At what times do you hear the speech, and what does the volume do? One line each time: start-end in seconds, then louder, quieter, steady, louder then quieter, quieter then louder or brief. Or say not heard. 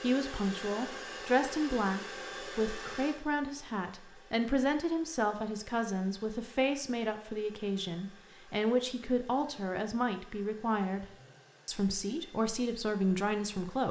0.0-11.1 steady
11.7-13.8 brief.